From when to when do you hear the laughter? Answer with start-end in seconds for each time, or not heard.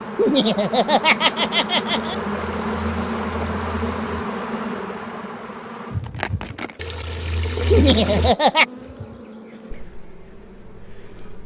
0.1-2.1, 7.7-8.7.